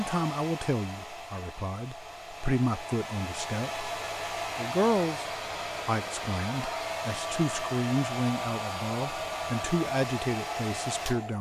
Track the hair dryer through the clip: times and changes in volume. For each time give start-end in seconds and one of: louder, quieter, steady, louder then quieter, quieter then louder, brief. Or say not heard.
0.0-11.3 louder.